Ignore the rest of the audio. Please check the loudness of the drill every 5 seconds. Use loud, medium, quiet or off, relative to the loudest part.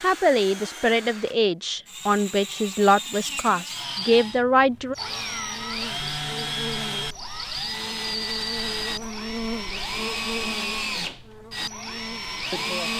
medium, loud, loud.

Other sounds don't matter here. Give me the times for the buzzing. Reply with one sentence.
The buzzing can be heard from 5.0 to 12.9 s.